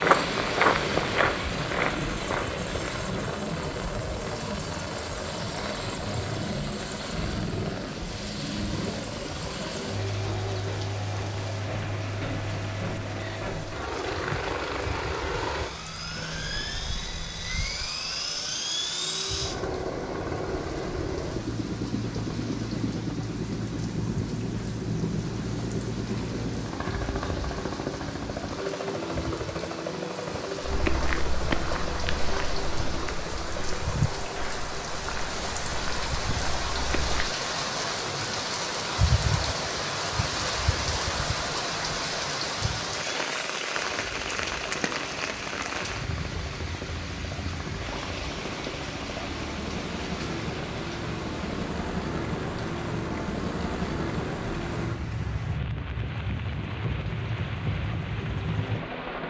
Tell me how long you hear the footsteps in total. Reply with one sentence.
The footsteps can be heard for 10 seconds in total.